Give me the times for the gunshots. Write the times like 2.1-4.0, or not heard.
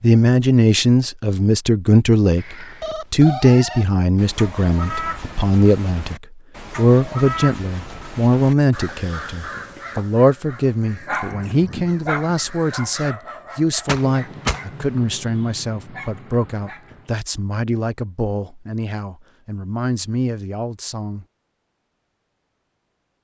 13.8-14.6.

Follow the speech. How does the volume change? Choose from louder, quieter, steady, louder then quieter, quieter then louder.
quieter.